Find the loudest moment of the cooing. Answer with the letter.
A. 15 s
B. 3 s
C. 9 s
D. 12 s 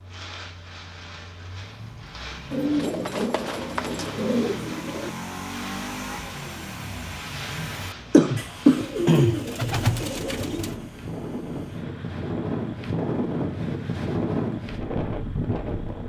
C.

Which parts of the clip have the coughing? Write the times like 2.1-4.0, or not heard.
7.5-8.8.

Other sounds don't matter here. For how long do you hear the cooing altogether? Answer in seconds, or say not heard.
5 s.